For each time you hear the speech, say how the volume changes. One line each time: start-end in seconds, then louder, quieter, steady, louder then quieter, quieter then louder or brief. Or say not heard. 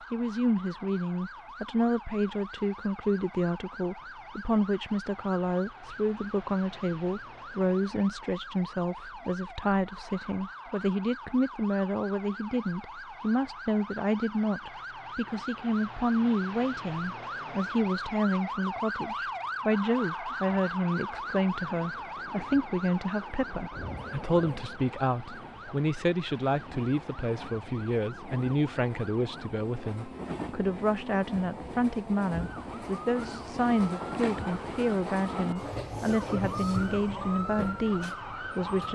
0.1-38.9 steady.